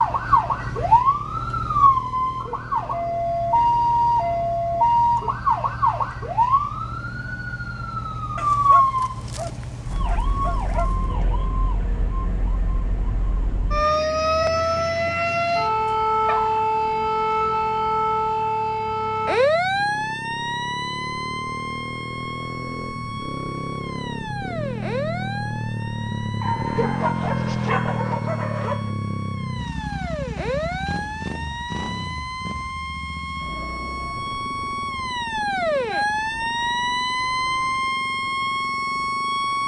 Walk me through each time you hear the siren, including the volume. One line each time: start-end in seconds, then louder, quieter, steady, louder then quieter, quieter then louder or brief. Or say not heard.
0.0-39.6 quieter then louder.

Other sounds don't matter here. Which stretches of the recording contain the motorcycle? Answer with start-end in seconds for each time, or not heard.
0.0-39.6.